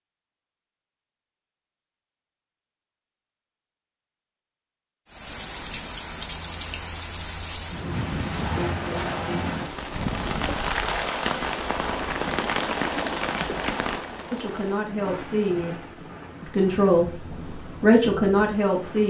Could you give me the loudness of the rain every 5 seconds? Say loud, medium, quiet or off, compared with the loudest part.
off, loud, loud, medium.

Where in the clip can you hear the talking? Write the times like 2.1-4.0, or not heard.
14.3-19.0.